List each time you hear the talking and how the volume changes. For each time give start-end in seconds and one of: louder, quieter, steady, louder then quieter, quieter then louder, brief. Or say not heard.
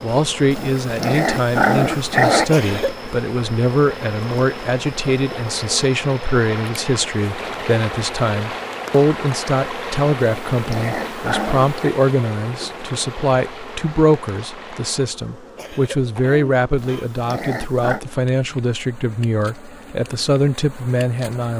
0.0-21.5 steady.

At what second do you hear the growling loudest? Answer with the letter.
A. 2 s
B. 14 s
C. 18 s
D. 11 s
A.